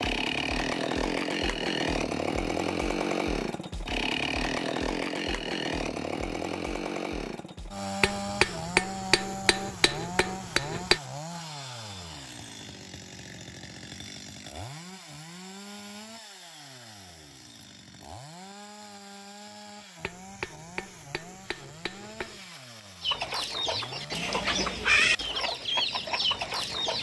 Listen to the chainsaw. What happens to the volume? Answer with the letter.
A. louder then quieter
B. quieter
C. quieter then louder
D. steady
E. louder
B.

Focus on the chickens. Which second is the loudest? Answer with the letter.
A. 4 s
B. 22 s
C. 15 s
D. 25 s
D.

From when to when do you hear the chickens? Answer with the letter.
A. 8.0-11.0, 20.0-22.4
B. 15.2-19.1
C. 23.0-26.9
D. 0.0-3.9
C.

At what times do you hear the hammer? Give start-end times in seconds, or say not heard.
8.0-11.0, 20.0-22.4.